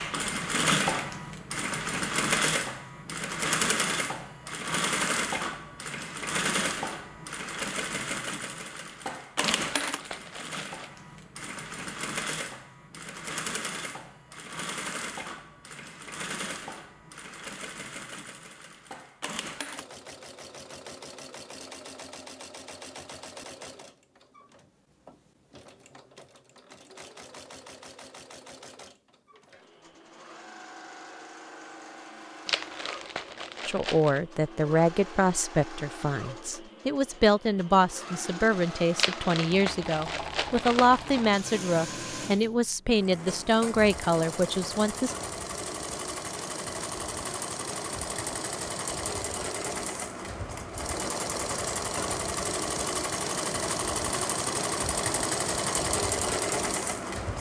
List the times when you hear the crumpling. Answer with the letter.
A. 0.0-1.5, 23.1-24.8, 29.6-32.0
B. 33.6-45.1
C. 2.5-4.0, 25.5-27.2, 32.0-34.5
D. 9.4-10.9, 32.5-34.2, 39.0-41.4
D.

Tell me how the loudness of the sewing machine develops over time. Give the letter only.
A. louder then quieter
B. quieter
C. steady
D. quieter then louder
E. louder
D.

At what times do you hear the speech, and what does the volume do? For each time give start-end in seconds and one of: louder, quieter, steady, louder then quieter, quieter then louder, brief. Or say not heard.
33.6-45.1 steady.